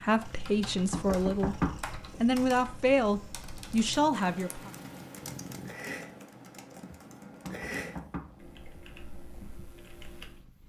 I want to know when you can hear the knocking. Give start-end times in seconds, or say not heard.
0.9-2.2, 7.5-8.6.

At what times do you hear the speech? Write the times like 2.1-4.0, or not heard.
0.0-1.6, 2.2-4.7.